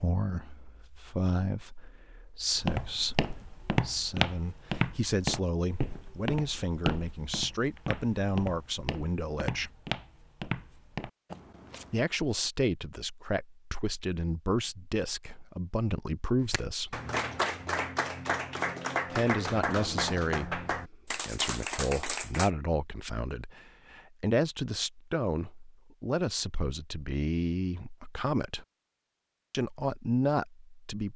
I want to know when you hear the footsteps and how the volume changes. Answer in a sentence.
The footsteps can be heard from 2.5 to 12.1 s, getting quieter.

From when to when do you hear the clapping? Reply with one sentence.
The clapping can be heard from 16.4 to 22.5 s.